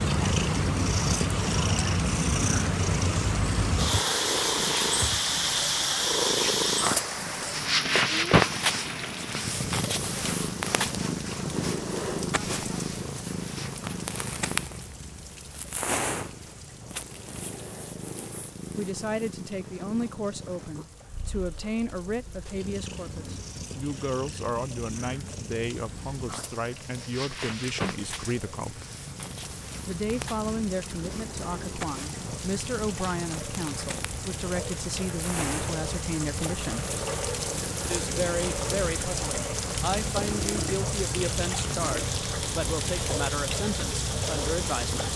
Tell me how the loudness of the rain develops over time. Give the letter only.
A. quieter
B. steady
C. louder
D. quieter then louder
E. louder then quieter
D.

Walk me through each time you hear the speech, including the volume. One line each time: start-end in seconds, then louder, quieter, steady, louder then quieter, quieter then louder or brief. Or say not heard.
18.8-28.8 steady
29.9-37.0 steady
37.9-45.0 steady.